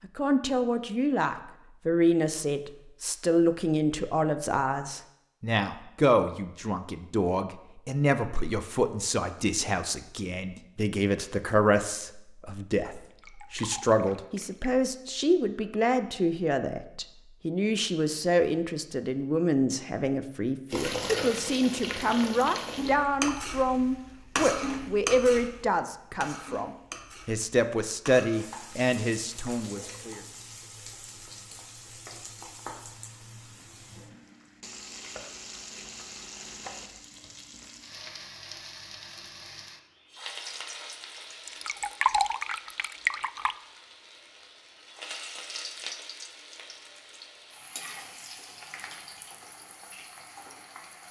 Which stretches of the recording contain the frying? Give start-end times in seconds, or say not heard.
20.7-51.0.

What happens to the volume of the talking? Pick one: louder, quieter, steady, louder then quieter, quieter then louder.
steady.